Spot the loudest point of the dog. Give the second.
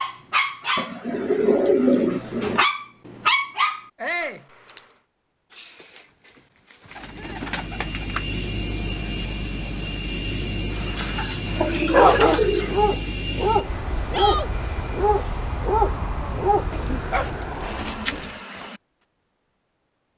12 s.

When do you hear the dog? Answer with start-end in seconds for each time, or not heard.
0.0-5.0, 10.7-18.8.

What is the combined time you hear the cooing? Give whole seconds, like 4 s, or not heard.
7 s.